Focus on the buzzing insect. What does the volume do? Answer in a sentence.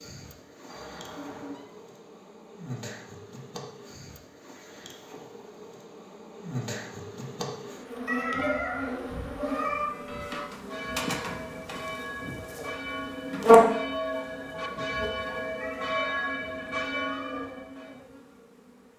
The loudness of the buzzing insect goes up, then down.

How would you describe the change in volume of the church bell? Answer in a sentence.
The volume of the church bell goes up.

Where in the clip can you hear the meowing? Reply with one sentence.
You can hear the meowing from 0.7 to 1.6 s, from 8.1 to 9.8 s and from 15.6 to 17.4 s.